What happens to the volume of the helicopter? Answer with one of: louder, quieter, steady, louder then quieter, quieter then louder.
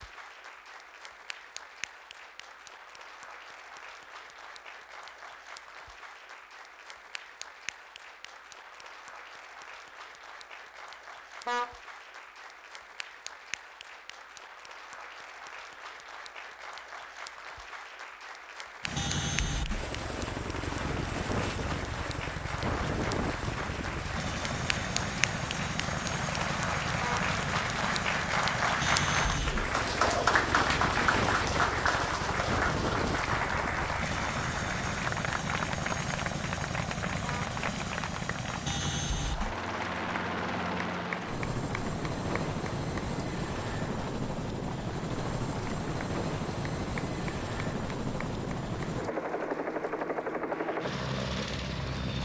steady.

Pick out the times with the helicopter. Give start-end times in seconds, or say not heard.
18.8-52.2.